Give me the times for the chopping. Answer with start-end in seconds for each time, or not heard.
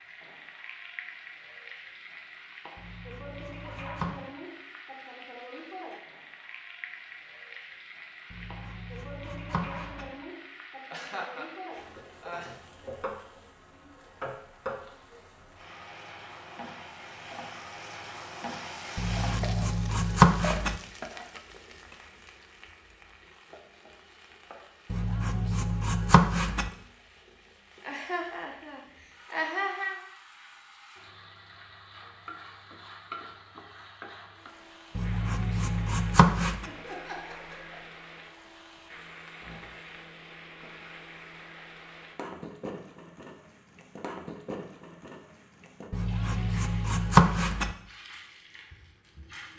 2.8-4.2, 8.3-10.1, 18.9-20.8, 24.9-26.7, 35.0-36.6, 45.9-47.8.